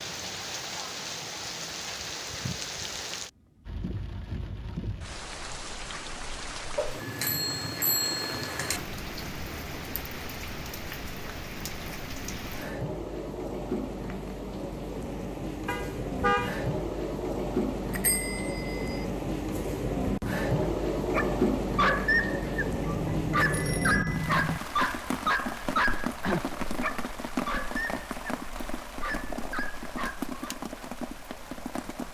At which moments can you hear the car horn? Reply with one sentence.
The car horn can be heard from 15.7 to 16.6 s.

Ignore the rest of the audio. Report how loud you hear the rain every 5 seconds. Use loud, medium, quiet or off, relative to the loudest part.
medium, medium, medium, loud, loud, medium, medium.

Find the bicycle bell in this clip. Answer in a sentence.
You can hear the bicycle bell from 6.8 to 8.8 s, from 17.9 to 19.1 s and from 22.6 to 24.6 s.